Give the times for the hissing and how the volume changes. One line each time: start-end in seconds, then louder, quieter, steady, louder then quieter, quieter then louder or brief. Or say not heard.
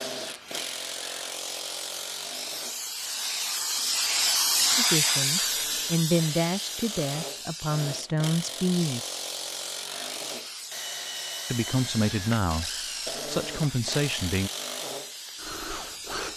0.0-16.3 louder then quieter.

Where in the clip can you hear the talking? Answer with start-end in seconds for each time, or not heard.
4.8-9.0, 11.4-14.5.